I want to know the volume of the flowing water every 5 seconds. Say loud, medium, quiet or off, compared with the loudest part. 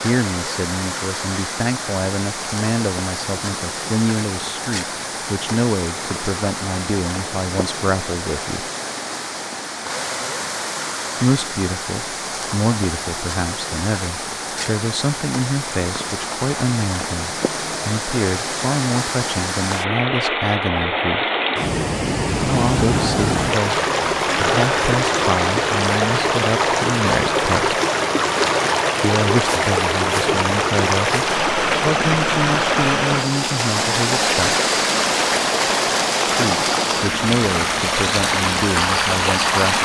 medium, medium, medium, medium, loud, loud, loud, loud.